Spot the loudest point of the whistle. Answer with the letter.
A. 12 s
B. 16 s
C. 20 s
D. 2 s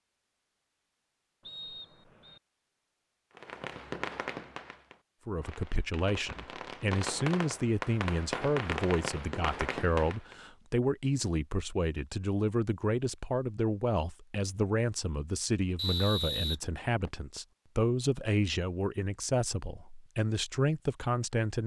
B.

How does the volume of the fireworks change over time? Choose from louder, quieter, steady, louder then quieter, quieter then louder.
quieter then louder.